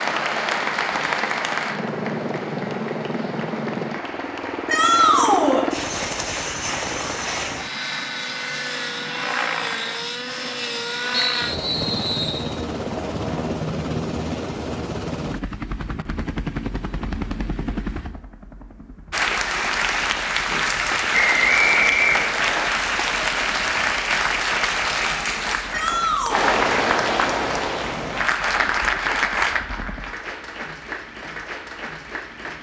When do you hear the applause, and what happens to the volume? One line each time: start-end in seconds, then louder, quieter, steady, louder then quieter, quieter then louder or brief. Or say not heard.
0.0-10.1 quieter
19.1-32.5 quieter.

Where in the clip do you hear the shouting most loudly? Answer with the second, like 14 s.
5 s.